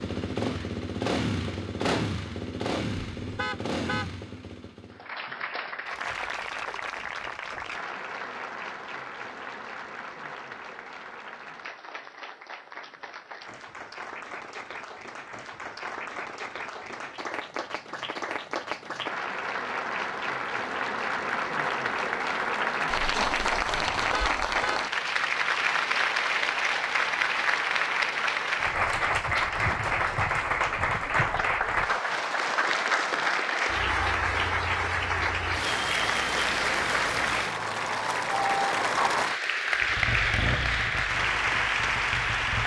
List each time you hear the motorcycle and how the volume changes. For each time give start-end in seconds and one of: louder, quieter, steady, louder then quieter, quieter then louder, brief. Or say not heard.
0.0-5.0 quieter
39.8-42.6 brief.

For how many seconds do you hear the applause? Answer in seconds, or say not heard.
38 s.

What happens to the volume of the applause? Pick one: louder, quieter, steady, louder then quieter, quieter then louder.
louder.